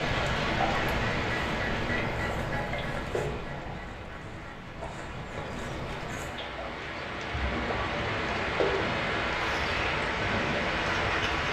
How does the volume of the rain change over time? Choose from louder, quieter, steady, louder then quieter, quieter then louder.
quieter then louder.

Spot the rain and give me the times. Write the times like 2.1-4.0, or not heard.
0.0-11.4.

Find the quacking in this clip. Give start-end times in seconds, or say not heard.
0.0-6.5, 9.3-11.4.